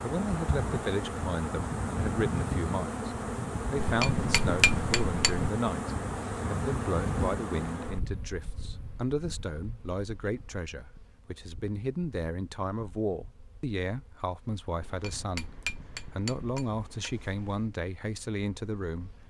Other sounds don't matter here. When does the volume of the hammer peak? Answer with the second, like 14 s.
5 s.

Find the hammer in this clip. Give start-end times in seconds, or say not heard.
3.8-5.5, 14.8-17.7.